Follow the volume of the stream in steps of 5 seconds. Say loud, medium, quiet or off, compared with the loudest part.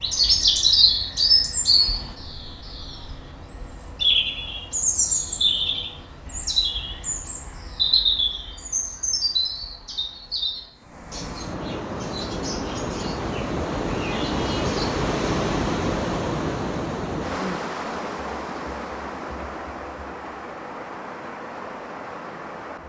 off, off, loud, loud, medium.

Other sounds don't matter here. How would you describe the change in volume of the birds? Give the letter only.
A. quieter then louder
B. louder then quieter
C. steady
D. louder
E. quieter
E.